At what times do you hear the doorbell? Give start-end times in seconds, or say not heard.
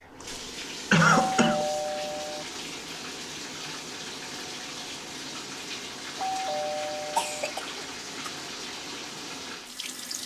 1.3-2.5, 6.2-7.5.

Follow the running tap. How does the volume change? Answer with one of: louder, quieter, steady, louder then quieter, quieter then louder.
steady.